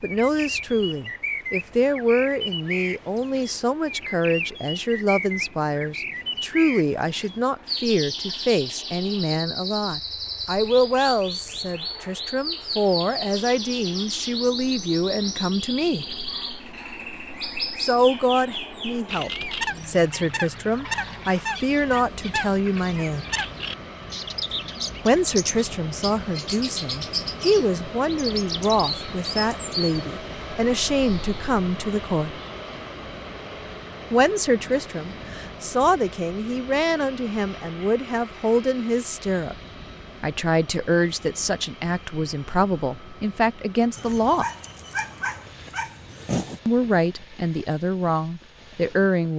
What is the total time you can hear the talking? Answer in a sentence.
The talking can be heard for 41 seconds in total.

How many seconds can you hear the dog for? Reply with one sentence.
You can hear the dog for 3 seconds altogether.